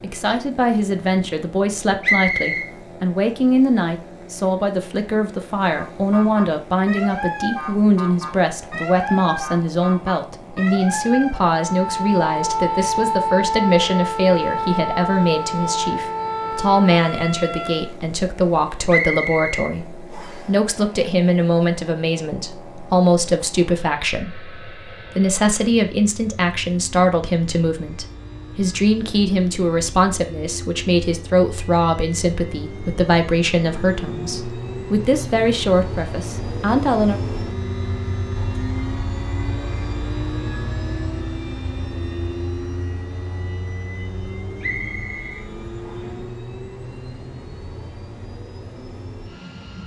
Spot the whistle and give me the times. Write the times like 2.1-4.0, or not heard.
2.0-2.7, 18.9-20.4, 44.6-46.2.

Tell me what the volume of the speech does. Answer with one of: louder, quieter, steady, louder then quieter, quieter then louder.
steady.